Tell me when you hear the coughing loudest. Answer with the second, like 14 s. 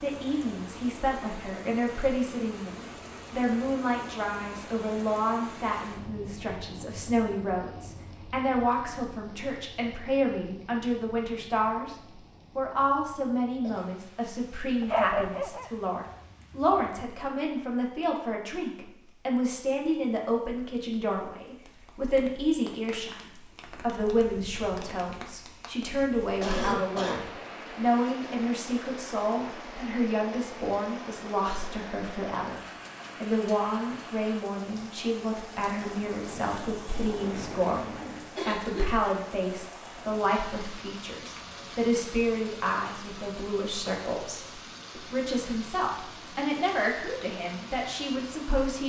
27 s.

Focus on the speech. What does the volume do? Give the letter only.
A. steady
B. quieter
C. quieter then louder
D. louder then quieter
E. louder
A.